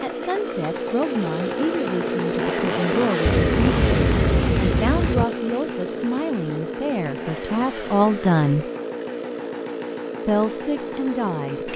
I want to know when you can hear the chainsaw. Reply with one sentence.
You can hear the chainsaw from 0.0 to 11.7 s.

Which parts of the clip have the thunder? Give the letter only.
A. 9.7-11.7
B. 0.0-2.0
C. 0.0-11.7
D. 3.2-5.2
D.